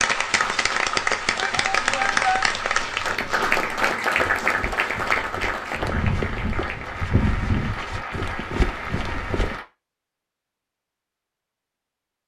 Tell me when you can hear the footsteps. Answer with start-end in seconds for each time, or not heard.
0.2-9.6.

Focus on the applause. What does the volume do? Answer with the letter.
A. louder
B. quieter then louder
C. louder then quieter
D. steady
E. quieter
E.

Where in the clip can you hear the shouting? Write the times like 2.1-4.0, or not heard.
1.4-2.5.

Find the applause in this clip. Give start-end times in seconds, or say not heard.
0.0-9.7.